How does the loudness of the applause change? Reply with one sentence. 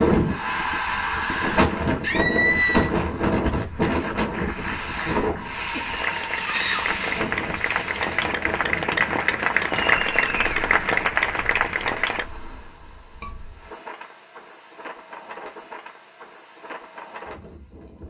The volume of the applause goes up.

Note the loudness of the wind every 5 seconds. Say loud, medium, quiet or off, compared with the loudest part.
loud, medium, quiet, quiet.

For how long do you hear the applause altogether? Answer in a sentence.
The applause can be heard for 8 seconds in total.